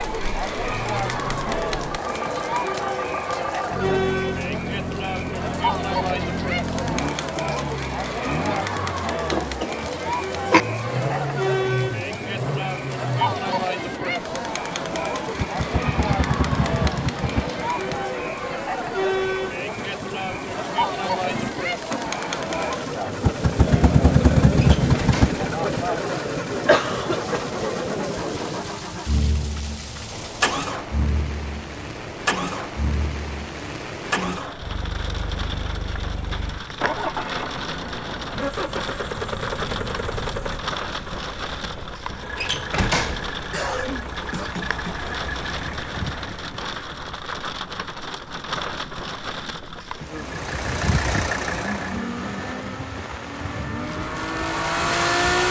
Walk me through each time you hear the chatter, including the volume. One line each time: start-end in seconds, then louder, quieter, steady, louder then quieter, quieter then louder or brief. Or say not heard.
0.0-28.8 steady.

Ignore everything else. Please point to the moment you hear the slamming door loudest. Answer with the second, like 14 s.
43 s.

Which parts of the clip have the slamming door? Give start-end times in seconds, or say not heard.
24.6-25.4, 42.4-43.3.